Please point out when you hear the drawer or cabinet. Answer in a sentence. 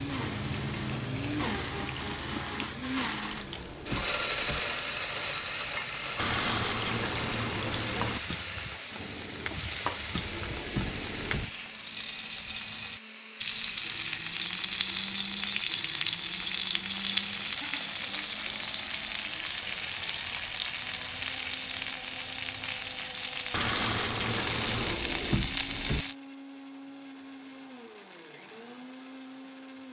You can hear the drawer or cabinet from 3.3 to 4.6 s, from 10.2 to 11.4 s and from 24.7 to 26.1 s.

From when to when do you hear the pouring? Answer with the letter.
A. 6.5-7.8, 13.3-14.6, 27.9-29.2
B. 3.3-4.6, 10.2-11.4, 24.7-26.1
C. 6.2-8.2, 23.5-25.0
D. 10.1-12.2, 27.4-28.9
C.